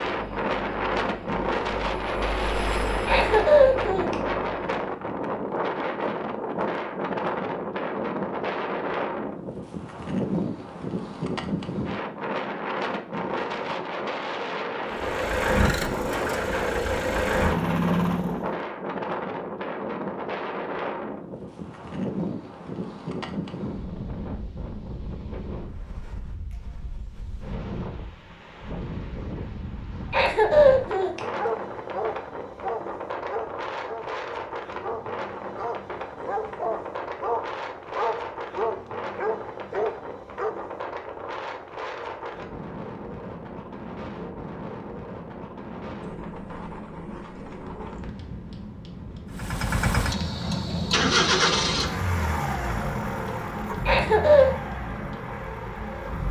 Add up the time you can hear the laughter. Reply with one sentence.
The laughter can be heard for 3 seconds in total.